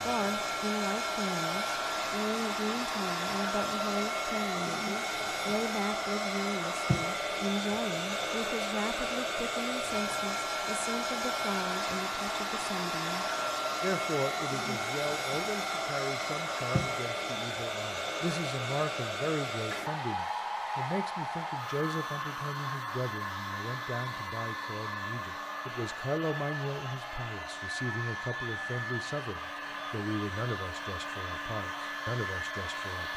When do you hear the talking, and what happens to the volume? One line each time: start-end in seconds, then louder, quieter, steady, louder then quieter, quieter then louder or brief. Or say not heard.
0.0-33.1 steady.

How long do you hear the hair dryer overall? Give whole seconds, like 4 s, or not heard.
33 s.